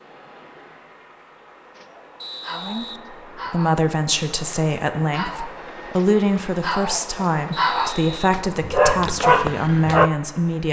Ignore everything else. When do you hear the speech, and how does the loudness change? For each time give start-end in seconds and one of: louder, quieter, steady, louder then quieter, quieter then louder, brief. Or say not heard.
2.5-10.6 steady.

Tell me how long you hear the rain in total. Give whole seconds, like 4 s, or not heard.
not heard.